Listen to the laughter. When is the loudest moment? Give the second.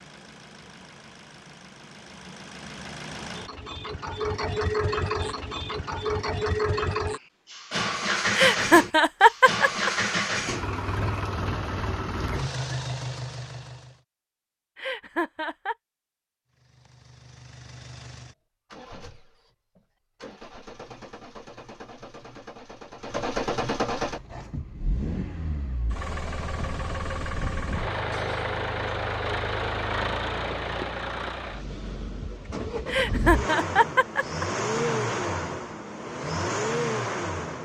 9 s.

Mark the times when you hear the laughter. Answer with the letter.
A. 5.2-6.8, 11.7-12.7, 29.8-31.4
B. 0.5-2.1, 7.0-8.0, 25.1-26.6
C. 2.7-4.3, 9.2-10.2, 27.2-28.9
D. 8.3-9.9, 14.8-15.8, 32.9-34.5
D.